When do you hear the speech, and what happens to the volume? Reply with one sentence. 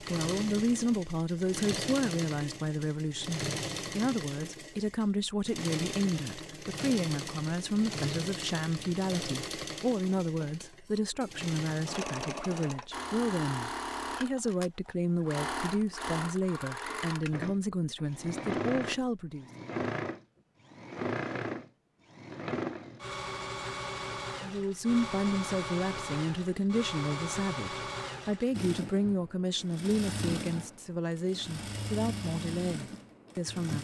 You can hear the speech from 0.0 to 19.4 s, at a steady volume; and from 24.4 to 33.7 s, at a steady volume.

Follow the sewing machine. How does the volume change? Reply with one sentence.
The volume of the sewing machine stays about the same.